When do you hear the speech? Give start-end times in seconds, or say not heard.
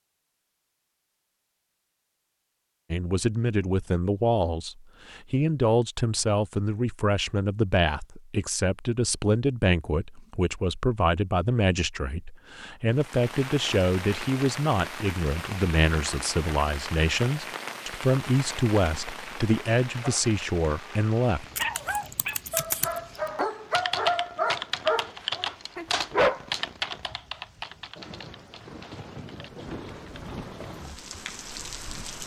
2.9-21.4.